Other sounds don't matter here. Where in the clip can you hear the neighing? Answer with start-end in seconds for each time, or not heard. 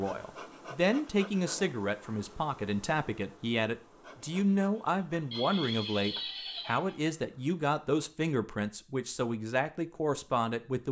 5.3-7.0.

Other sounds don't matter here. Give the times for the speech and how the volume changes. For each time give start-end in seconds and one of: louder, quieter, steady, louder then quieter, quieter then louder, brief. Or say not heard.
0.0-10.8 steady.